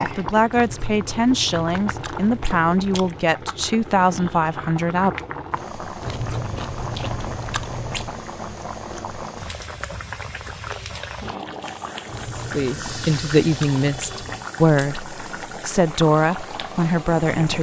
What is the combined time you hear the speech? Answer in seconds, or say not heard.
10 s.